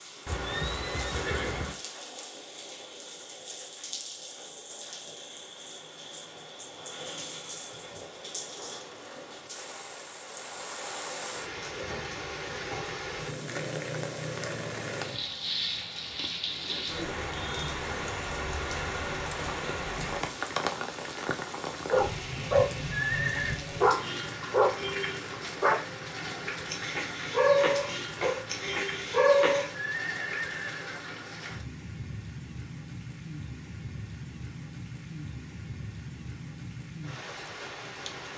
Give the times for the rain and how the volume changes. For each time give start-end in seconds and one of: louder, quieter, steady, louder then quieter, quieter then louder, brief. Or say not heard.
0.0-38.3 louder then quieter.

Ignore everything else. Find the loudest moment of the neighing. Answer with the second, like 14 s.
23 s.